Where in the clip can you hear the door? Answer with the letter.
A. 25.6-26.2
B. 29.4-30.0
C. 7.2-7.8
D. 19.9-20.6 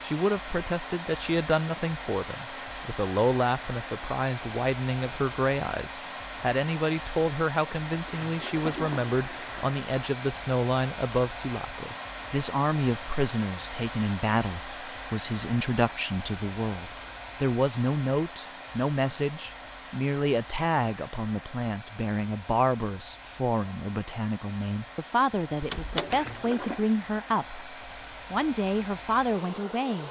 A.